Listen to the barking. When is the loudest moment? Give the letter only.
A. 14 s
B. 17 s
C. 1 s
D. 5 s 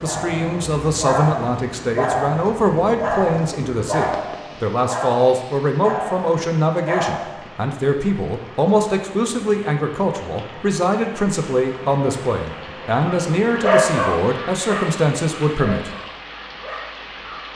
A.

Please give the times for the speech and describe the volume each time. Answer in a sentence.
The speech can be heard from 0.0 to 15.9 s, at a steady volume.